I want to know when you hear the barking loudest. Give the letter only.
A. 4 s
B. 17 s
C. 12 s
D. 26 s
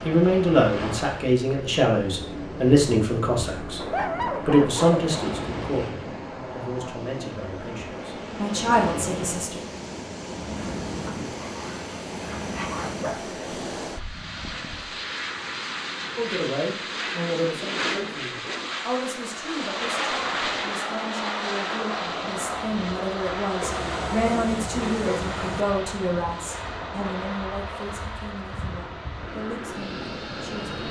A.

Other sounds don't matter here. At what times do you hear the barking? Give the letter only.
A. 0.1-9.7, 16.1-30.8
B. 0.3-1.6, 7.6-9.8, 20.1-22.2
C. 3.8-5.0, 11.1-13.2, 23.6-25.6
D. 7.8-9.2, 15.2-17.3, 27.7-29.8
C.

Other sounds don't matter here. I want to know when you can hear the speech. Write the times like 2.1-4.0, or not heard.
0.1-9.7, 16.1-30.8.